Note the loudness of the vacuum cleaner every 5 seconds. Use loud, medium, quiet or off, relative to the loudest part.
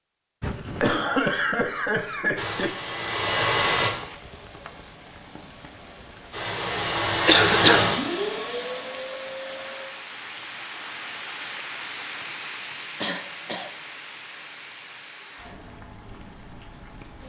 loud, loud, off, off.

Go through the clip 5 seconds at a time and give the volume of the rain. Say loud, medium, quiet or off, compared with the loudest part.
medium, medium, loud, medium.